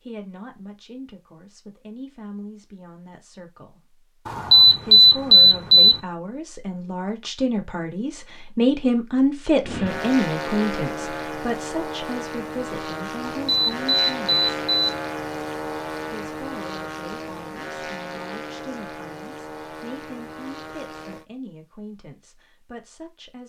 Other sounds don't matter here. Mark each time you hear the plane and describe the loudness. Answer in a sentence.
You can hear the plane from 9.6 to 21.2 s, getting quieter.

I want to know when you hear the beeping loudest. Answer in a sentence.
The loudest moment of the beeping is at 5 seconds.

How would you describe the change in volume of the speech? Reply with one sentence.
The volume of the speech goes up, then down.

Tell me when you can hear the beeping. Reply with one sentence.
The beeping can be heard from 4.2 to 6.0 s and from 13.2 to 14.9 s.